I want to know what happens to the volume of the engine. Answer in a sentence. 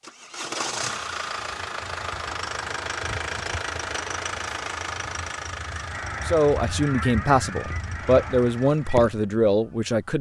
The volume of the engine goes down.